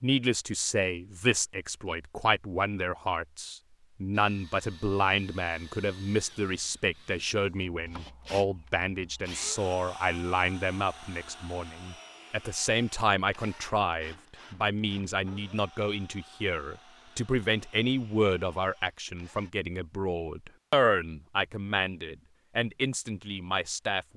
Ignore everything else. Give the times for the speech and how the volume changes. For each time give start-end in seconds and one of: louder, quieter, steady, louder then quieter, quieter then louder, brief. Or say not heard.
0.0-24.1 steady.